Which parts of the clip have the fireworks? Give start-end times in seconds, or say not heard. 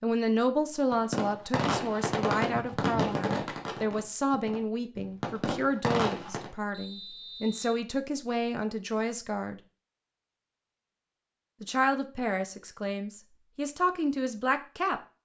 0.9-6.5.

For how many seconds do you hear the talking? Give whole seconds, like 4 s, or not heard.
13 s.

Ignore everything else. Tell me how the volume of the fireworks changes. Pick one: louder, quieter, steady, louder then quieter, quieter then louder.
quieter then louder.